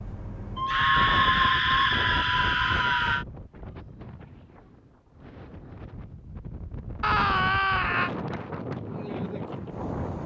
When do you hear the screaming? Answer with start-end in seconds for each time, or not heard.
0.6-3.2, 7.0-8.1.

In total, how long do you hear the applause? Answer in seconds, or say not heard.
not heard.